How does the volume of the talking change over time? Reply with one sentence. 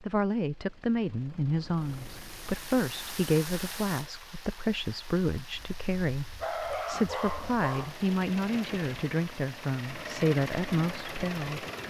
The loudness of the talking stays about the same.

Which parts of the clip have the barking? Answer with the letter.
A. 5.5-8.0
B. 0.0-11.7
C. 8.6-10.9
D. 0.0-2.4
A.